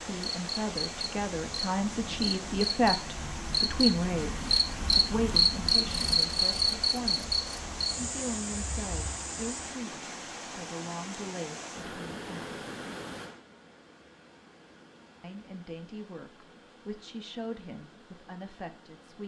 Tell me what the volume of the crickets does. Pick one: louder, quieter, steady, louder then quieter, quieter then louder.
louder then quieter.